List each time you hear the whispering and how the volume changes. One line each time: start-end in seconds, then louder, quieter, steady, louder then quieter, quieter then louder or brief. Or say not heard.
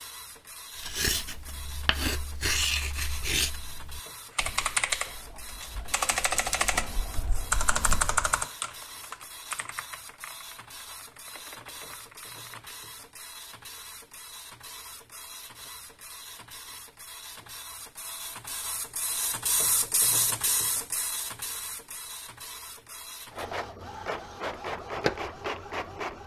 not heard.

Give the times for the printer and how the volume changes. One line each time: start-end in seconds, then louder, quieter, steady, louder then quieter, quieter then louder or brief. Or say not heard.
0.0-26.2 louder.